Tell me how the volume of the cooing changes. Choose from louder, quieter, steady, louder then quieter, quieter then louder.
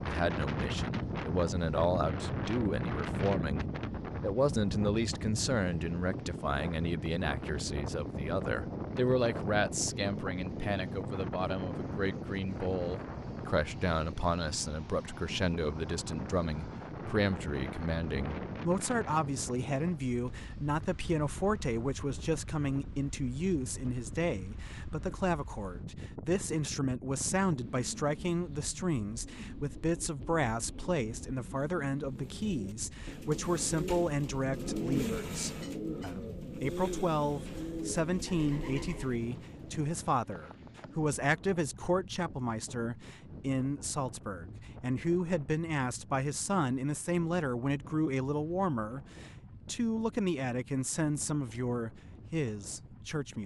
louder then quieter.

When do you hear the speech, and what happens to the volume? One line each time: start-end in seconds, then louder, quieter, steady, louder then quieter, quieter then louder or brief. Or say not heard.
0.0-53.4 steady.